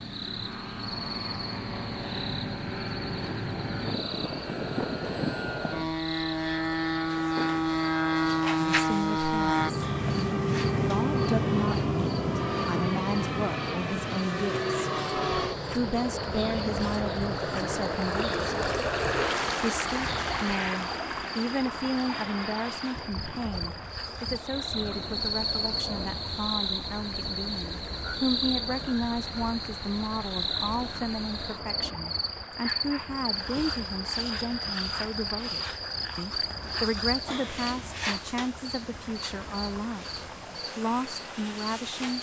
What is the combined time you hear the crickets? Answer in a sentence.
The crickets can be heard for 42 seconds in total.